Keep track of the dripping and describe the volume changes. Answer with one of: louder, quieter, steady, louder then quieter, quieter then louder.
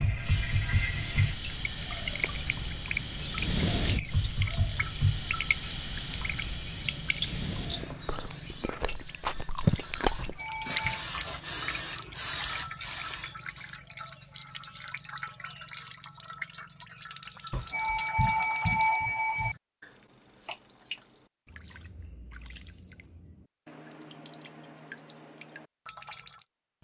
quieter.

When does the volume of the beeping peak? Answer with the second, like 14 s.
19 s.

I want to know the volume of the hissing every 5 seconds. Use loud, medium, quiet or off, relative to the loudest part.
loud, medium, loud, off, off, off.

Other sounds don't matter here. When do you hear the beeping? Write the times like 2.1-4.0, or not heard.
10.2-11.1, 17.5-19.6.